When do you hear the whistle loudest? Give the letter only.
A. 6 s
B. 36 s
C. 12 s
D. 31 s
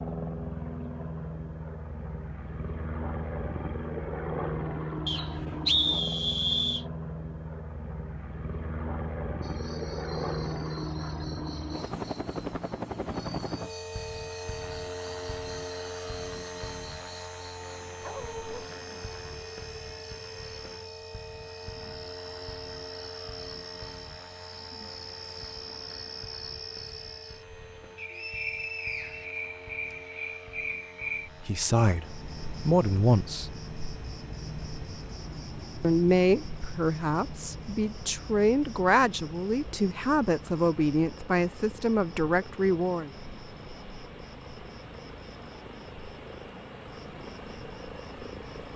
A.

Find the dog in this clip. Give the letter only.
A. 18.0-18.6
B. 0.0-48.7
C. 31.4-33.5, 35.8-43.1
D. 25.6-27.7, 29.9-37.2
A.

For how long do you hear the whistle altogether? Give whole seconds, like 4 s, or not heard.
4 s.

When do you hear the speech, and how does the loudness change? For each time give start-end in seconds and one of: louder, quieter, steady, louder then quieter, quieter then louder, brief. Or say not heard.
31.4-33.5 brief
35.8-43.1 steady.